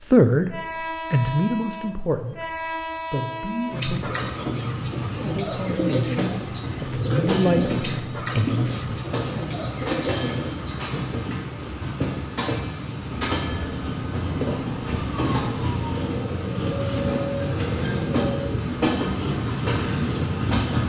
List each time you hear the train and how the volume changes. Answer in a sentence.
You can hear the train from 0.0 to 20.8 s, getting louder.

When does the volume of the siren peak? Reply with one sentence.
The volume of the siren peaks at 17 seconds.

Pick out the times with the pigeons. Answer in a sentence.
You can hear the pigeons from 3.7 to 11.2 s.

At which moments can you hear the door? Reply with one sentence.
You can't hear the door here.